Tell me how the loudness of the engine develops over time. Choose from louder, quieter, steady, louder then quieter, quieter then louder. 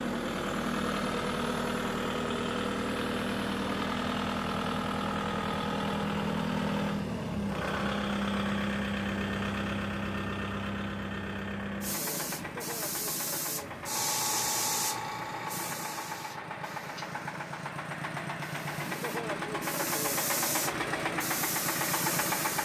quieter then louder.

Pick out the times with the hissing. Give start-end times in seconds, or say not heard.
11.8-22.6.